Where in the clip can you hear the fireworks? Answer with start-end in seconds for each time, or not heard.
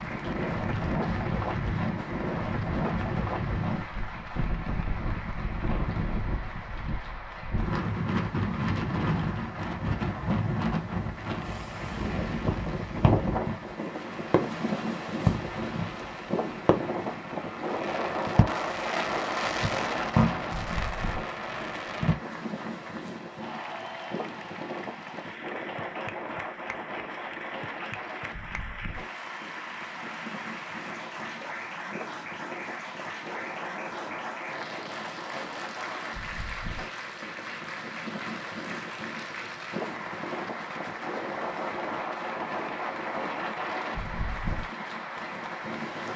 11.2-22.1.